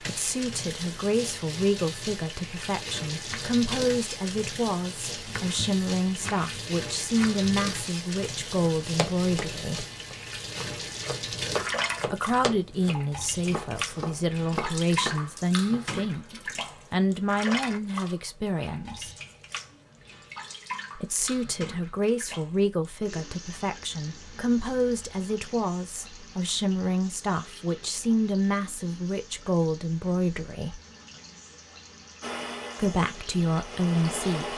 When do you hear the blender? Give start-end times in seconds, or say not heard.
32.2-34.5.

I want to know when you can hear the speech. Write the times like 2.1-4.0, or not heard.
0.0-9.8, 12.1-19.1, 20.9-30.8, 32.8-34.5.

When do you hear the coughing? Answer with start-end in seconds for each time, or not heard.
not heard.